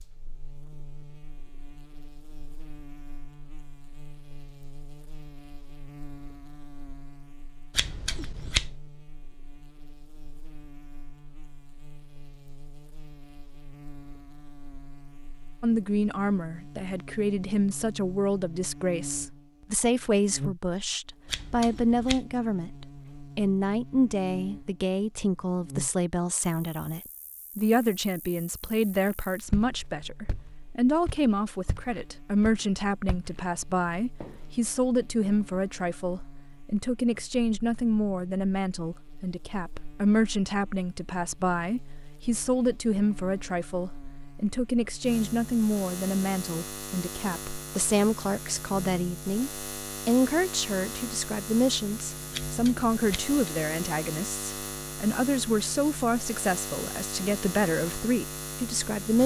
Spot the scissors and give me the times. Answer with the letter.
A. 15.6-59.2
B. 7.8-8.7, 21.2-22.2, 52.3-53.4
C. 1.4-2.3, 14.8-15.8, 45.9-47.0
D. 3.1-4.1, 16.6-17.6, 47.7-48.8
B.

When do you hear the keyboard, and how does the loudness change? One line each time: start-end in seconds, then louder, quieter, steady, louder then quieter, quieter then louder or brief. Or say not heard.
not heard.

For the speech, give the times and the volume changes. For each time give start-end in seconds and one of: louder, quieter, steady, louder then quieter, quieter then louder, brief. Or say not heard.
15.6-59.2 steady.